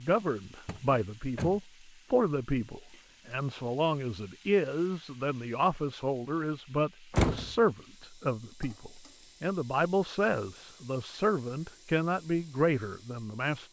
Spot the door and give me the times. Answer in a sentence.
You can hear the door from 0.7 to 1.6 s and from 7.1 to 7.5 s.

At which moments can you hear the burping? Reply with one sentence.
You can't hear the burping here.